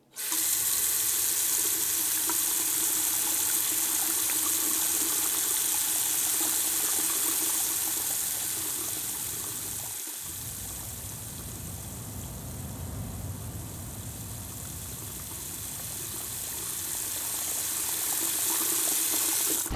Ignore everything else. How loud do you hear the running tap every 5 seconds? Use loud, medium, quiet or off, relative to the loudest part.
loud, loud, quiet, loud.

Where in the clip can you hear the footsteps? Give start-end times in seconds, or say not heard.
not heard.